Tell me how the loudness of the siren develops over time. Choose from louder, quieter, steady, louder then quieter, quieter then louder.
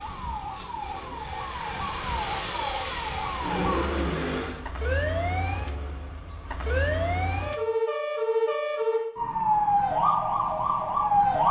louder.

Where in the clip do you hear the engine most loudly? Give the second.
4 s.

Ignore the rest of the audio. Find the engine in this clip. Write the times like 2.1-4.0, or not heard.
0.0-4.6.